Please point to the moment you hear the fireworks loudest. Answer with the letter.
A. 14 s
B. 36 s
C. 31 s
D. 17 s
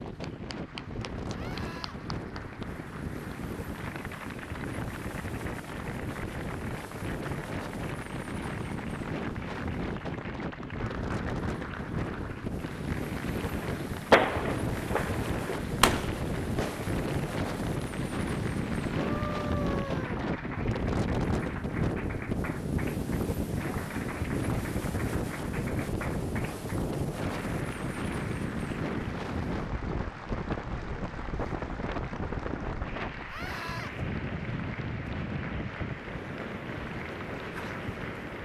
A.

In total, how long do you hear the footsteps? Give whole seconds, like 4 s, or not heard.
not heard.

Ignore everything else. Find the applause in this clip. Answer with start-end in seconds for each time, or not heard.
0.0-38.3.